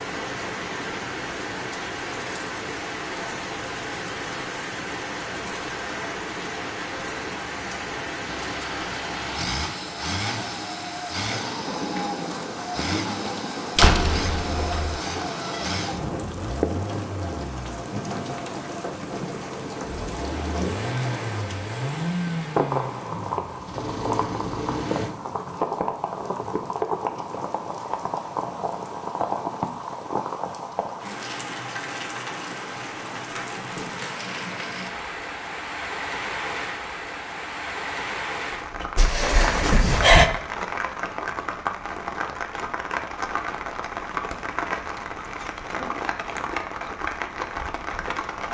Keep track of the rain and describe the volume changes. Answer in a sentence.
The loudness of the rain stays about the same.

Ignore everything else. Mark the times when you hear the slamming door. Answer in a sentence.
The slamming door can be heard from 13.8 to 15.0 s and from 39.0 to 40.3 s.